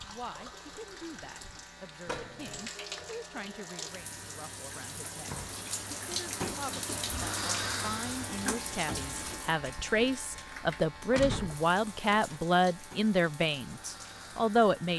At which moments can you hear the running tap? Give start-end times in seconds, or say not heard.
0.0-14.9.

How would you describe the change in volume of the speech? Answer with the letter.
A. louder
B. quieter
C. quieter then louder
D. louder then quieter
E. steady
A.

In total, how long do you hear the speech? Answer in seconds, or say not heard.
15 s.